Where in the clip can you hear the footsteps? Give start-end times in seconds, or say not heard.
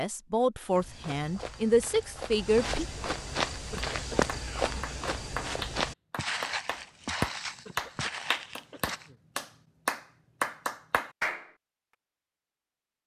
0.6-9.1.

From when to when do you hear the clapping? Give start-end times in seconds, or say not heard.
3.8-11.5.